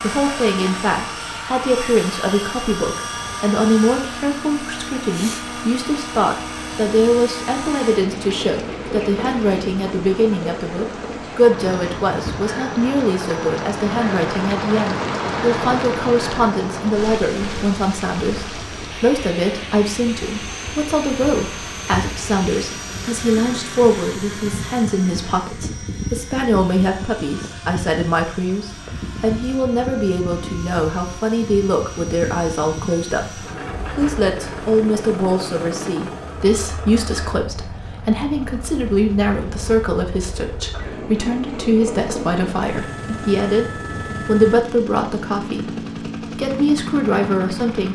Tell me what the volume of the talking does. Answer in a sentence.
The volume of the talking stays about the same.